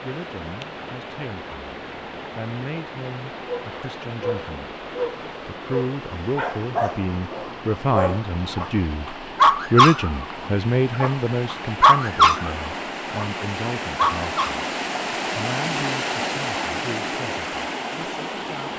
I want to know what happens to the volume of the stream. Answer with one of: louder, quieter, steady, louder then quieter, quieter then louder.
louder.